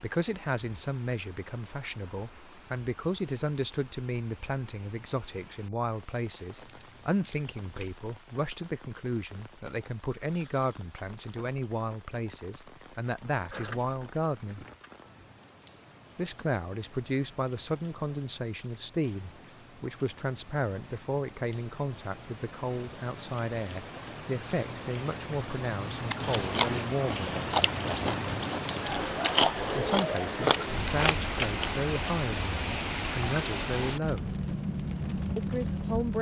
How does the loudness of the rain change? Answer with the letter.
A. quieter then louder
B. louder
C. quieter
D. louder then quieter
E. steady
B.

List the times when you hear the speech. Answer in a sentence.
The speech can be heard from 0.0 to 14.7 s, from 16.1 to 27.4 s, from 29.8 to 34.3 s and from 35.4 to 36.1 s.